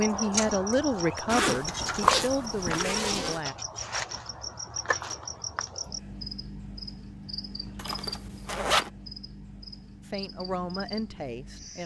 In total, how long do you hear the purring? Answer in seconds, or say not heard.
not heard.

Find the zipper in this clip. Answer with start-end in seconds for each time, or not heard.
1.2-3.4, 7.8-8.9.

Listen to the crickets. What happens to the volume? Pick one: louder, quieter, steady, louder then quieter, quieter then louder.
quieter.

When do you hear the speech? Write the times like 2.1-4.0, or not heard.
0.0-3.5, 10.1-11.8.